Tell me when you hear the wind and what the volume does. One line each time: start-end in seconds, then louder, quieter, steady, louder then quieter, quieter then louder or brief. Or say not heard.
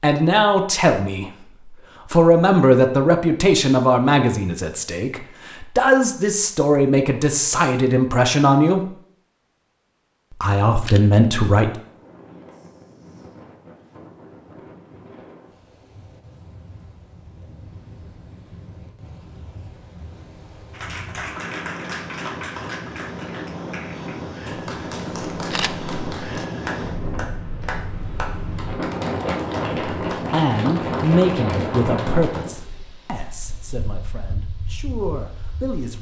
11.7-35.9 louder.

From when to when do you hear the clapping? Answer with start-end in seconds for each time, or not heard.
20.7-32.5.